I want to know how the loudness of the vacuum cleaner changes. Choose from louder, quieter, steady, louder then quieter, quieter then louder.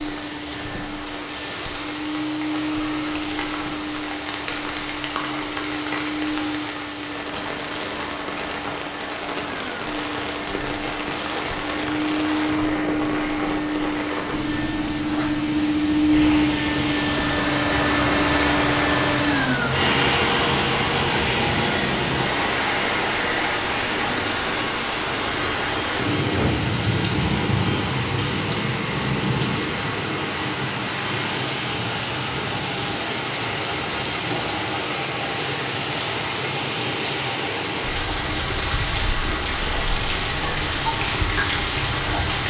louder then quieter.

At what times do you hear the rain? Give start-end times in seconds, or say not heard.
0.0-42.4.